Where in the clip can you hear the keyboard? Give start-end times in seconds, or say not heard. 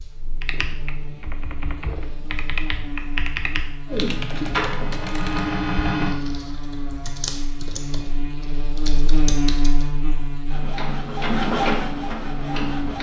0.4-9.9.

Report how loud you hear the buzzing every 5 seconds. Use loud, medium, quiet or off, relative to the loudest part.
medium, loud, loud.